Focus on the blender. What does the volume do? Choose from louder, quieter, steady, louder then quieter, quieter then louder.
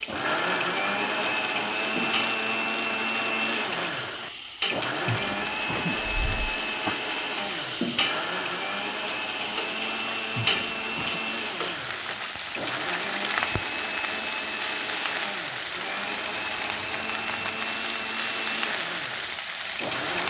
quieter.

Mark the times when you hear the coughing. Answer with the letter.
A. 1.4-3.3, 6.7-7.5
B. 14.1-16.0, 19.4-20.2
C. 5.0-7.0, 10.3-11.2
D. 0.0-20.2
C.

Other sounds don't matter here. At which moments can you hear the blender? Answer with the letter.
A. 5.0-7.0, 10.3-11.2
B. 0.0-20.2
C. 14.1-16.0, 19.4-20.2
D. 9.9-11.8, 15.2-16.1
B.